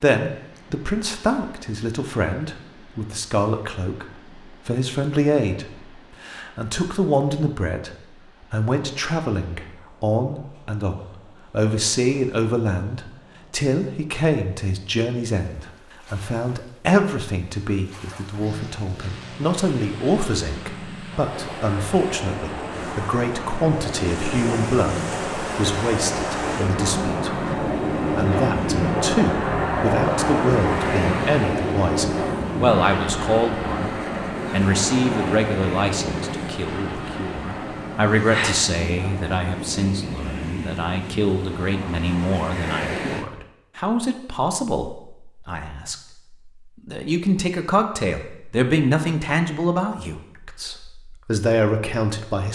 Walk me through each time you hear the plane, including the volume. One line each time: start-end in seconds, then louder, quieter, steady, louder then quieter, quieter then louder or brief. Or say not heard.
18.4-40.4 louder then quieter.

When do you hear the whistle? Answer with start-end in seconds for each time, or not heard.
not heard.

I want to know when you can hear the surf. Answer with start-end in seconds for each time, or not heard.
0.2-43.2.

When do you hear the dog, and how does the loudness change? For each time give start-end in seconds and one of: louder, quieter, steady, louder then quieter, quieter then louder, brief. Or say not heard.
not heard.